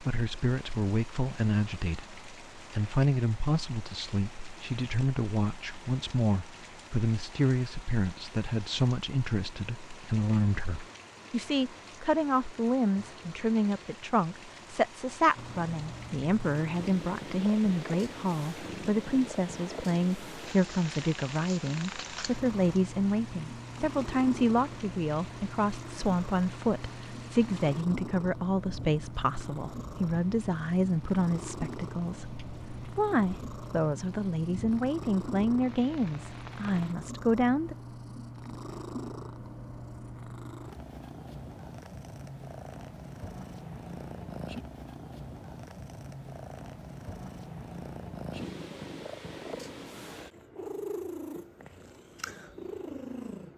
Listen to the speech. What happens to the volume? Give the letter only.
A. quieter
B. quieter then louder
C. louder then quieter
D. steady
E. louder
D.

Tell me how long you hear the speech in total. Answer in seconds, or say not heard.
38 s.